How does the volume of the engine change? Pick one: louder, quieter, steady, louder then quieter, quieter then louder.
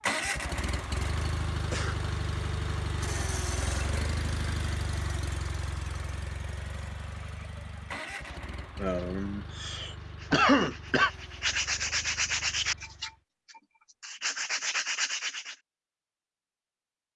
quieter.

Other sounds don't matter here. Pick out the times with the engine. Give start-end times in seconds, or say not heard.
0.0-13.2.